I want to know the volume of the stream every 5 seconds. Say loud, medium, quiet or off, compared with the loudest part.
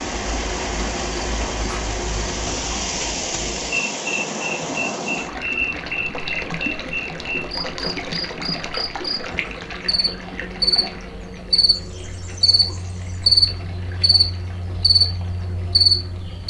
loud, loud, quiet, quiet.